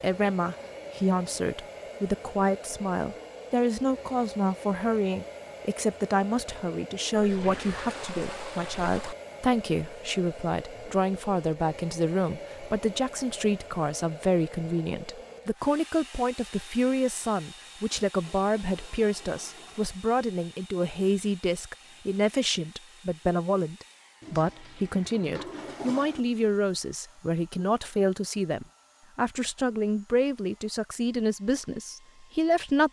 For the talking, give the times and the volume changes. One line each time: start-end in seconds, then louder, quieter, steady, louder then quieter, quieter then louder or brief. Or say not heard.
0.0-32.8 steady.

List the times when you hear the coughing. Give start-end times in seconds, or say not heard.
not heard.